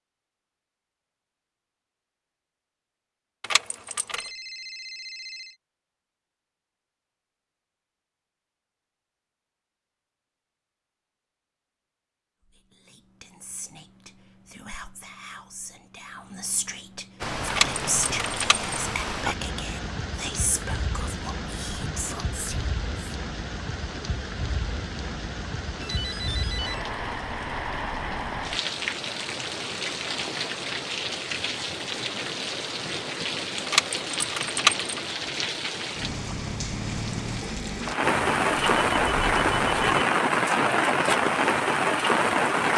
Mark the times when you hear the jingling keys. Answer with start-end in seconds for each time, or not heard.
3.4-4.3, 17.5-18.8, 33.6-35.0.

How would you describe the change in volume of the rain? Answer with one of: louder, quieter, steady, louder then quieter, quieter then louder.
louder.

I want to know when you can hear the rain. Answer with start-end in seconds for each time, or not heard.
17.2-42.7.